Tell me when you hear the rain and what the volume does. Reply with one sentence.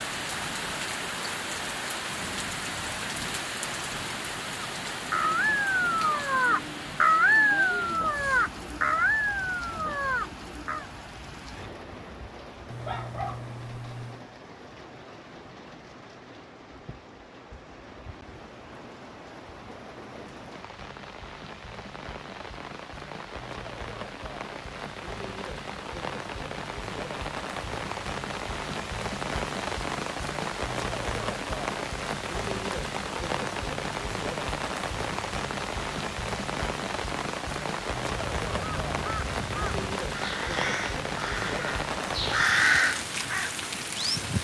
The rain can be heard from 0.0 to 44.4 s, getting quieter then louder.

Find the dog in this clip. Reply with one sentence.
The dog can be heard from 12.7 to 14.2 s.